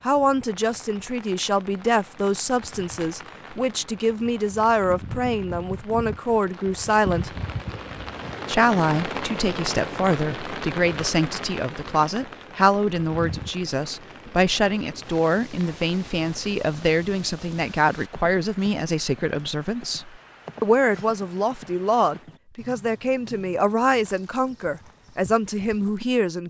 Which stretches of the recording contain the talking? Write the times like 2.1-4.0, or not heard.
0.0-7.3, 8.4-26.4.